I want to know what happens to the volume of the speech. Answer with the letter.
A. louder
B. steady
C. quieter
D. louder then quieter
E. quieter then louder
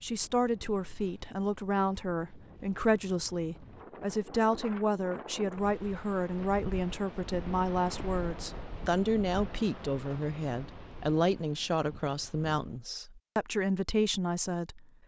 B.